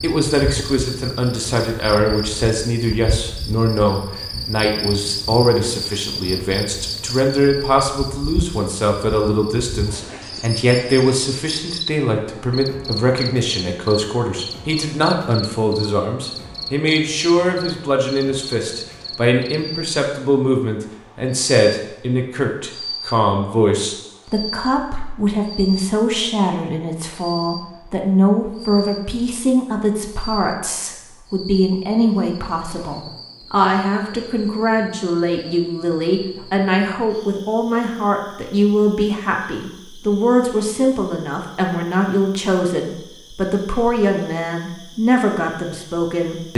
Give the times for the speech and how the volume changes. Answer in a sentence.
You can hear the speech from 0.0 to 46.5 s, at a steady volume.